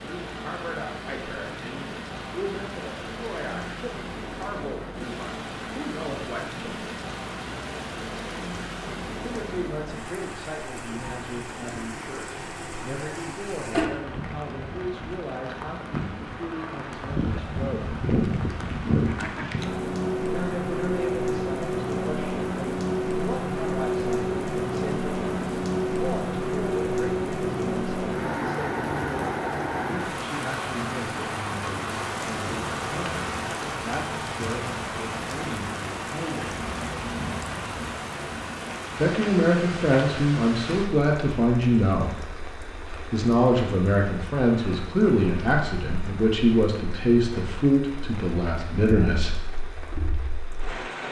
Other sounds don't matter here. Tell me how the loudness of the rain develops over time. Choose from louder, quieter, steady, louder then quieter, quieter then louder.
louder then quieter.